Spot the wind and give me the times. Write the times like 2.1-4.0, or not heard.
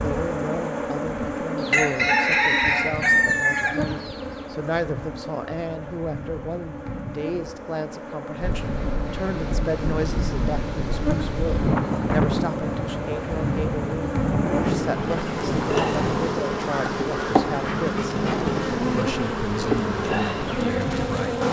8.4-21.3.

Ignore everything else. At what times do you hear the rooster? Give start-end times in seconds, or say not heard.
1.6-4.2.